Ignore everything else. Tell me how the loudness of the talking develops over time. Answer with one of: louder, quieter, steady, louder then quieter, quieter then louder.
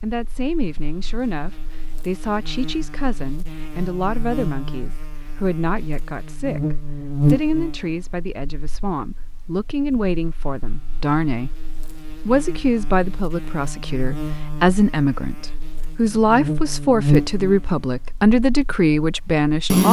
louder.